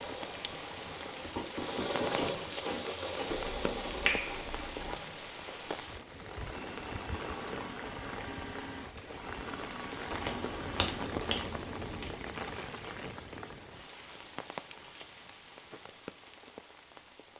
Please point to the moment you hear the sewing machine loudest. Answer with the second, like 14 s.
2 s.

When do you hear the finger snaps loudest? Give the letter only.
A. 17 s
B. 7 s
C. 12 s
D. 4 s
D.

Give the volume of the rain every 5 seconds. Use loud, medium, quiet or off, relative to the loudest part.
loud, loud, loud, medium.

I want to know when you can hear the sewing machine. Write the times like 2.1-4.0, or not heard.
0.0-10.9.